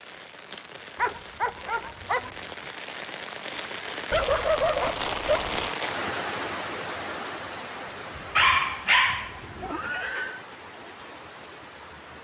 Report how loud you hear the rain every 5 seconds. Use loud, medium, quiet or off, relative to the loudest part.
loud, loud, medium.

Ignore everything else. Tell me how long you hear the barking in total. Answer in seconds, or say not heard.
4 s.